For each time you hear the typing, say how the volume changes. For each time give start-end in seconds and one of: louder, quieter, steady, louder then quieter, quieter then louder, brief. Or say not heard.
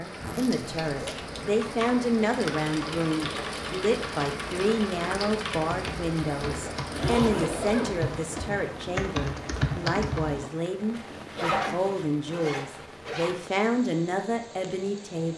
0.8-10.5 louder.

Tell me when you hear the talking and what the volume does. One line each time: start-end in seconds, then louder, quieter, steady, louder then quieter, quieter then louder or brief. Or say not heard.
0.0-15.3 steady.